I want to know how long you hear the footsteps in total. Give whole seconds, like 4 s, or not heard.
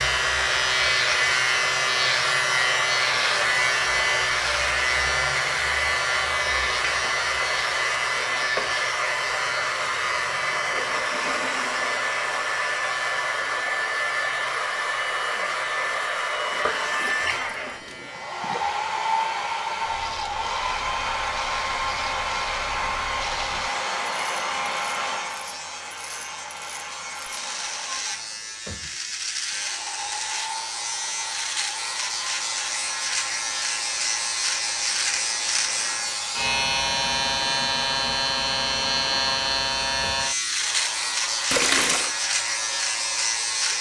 not heard.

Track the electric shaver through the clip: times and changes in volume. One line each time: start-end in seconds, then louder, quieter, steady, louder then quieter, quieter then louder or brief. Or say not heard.
0.0-43.7 quieter then louder.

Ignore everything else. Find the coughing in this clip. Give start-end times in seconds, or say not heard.
not heard.